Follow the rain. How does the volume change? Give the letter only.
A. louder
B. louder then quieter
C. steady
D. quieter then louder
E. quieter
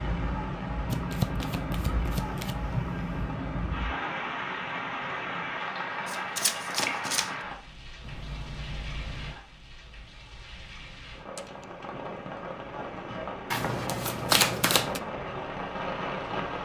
D.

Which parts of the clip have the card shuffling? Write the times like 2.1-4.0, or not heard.
0.9-2.5, 6.0-7.3, 13.5-15.0.